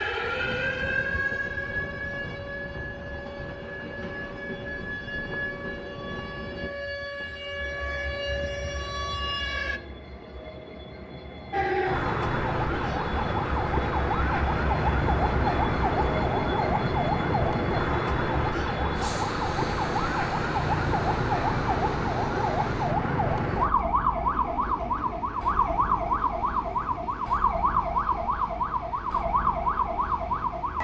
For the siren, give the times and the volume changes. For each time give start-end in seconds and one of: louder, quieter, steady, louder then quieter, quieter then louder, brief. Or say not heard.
0.0-9.8 quieter then louder
11.5-30.7 steady.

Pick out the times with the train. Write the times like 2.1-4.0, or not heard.
0.1-30.7.